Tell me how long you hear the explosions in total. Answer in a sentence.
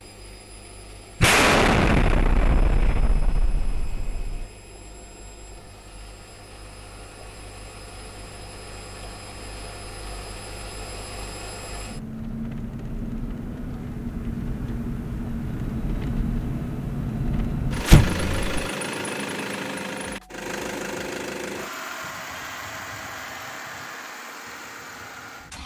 You can hear the explosions for 4 seconds altogether.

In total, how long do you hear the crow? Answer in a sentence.
The crow can't be heard in this clip.